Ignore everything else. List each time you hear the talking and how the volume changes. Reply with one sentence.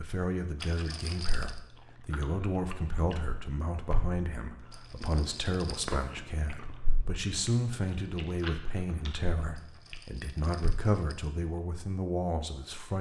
You can hear the talking from 0.0 to 12.9 s, at a steady volume.